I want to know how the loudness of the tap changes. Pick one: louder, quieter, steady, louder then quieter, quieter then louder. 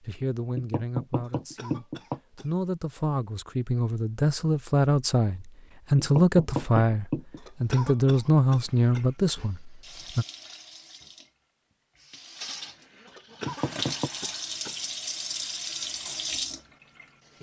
louder.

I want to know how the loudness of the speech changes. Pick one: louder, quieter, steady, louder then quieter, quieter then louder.
louder.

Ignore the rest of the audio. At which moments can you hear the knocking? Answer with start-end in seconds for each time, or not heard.
0.6-2.2, 6.0-7.4, 13.4-14.1.